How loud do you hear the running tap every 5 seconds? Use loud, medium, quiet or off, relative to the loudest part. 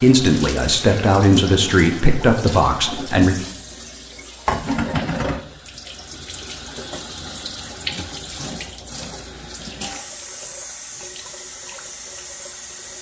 loud, loud, medium.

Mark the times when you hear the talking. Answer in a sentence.
The talking can be heard from 0.0 to 3.4 s.